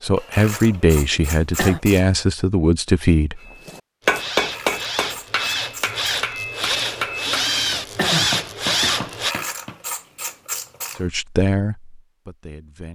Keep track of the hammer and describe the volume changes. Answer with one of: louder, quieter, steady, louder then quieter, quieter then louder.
quieter.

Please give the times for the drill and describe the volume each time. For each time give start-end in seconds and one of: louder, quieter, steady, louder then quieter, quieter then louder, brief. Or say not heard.
4.0-9.3 louder.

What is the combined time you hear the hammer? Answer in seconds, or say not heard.
6 s.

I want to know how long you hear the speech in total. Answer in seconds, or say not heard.
5 s.